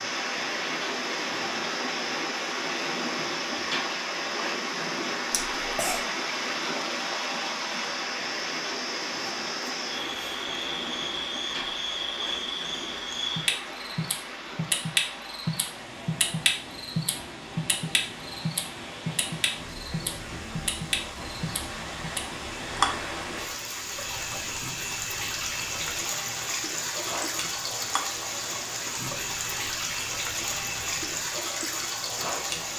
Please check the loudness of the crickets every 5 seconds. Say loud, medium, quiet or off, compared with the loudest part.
medium, medium, loud, loud, loud, medium, medium.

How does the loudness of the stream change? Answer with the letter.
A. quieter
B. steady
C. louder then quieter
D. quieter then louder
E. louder
D.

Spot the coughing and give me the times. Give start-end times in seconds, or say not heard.
5.3-6.0.